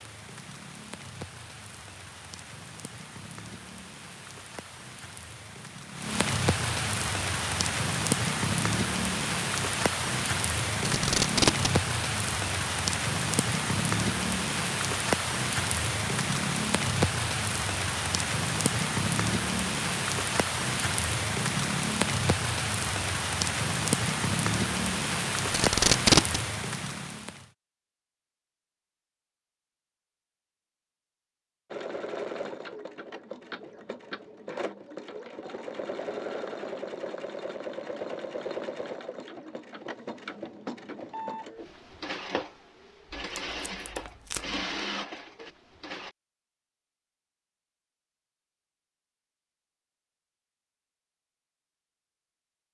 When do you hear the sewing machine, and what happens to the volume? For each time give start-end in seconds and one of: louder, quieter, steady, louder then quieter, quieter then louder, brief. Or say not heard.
31.7-46.1 steady.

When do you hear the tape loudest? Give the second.
26 s.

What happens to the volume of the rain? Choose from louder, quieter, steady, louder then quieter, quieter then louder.
louder.